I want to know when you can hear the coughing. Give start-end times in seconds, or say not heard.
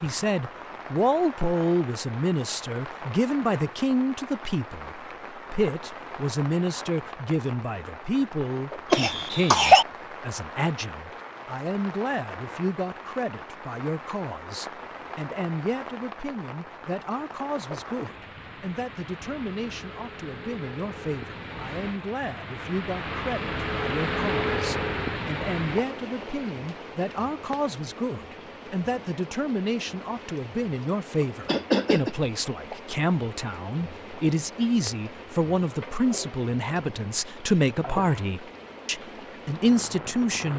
8.9-9.8, 31.4-32.1.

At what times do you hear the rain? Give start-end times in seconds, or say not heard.
0.0-40.5.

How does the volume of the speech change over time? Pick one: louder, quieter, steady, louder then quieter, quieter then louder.
quieter then louder.